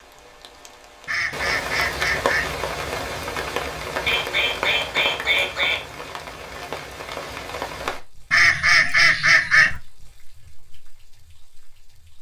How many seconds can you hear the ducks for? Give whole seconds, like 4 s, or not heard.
5 s.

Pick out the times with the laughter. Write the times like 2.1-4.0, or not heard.
not heard.